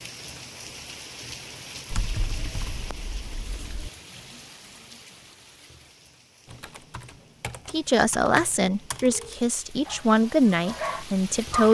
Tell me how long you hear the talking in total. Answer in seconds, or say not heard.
4 s.